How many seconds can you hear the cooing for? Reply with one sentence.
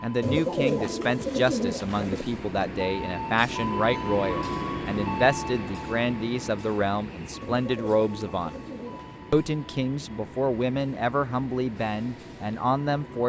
You can hear the cooing for 4 seconds altogether.